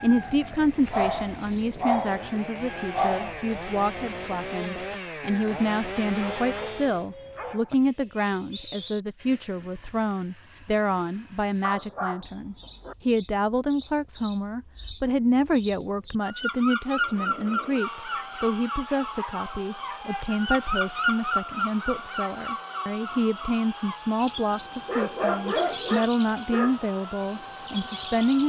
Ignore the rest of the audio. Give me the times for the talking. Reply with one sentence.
You can hear the talking from 0.0 to 28.4 s.